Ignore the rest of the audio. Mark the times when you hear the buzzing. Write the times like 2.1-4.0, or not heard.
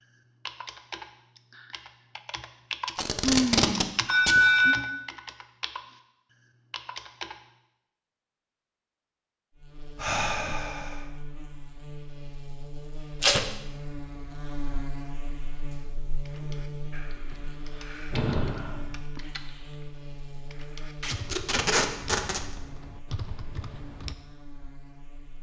9.6-25.3.